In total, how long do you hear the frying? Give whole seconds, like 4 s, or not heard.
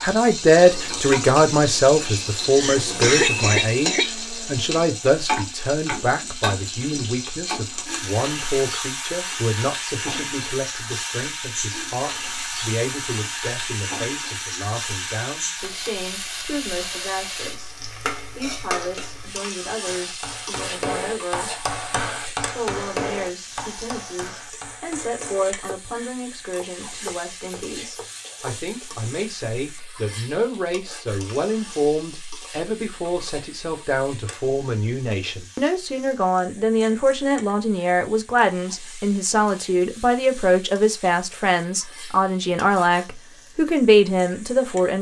45 s.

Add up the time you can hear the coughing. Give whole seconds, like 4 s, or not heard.
2 s.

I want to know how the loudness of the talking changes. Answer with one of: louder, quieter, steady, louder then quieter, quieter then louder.
quieter then louder.